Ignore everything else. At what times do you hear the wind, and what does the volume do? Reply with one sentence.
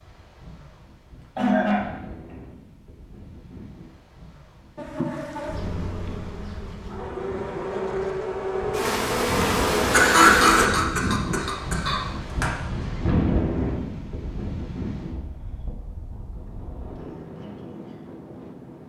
You can hear the wind from 0.0 to 18.8 s, getting louder then quieter.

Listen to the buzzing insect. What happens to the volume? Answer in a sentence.
The volume of the buzzing insect goes up.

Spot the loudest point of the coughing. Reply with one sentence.
The volume of the coughing peaks at 10 seconds.